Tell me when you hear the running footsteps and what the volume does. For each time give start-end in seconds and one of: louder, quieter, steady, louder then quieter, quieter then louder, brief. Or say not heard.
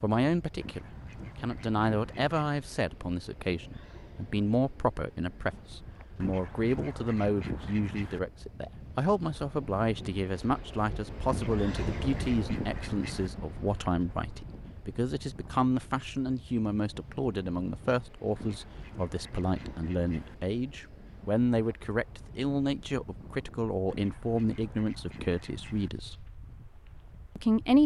not heard.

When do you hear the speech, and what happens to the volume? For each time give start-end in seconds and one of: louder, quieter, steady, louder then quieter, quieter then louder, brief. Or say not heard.
0.0-26.1 steady
27.4-27.8 brief.